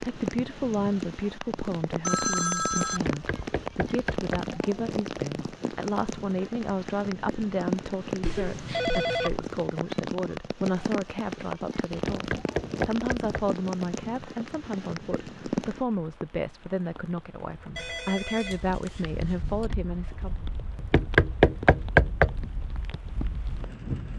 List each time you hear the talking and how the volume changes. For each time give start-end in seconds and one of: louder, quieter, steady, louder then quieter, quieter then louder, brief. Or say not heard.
0.0-20.4 steady.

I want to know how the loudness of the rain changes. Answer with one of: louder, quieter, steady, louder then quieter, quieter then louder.
quieter.